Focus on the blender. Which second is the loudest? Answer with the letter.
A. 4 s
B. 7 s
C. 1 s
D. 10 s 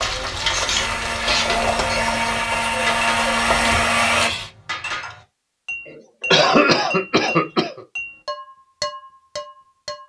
A.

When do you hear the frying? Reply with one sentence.
The frying can be heard from 0.0 to 4.5 s.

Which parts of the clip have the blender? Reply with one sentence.
You can hear the blender from 0.0 to 4.3 s.